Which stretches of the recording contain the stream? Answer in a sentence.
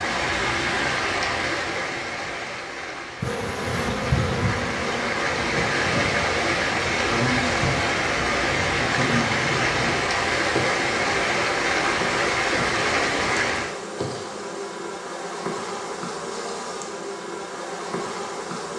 You can hear the stream from 0.0 to 13.8 s.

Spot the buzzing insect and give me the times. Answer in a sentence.
The buzzing insect can be heard from 3.2 to 18.7 s.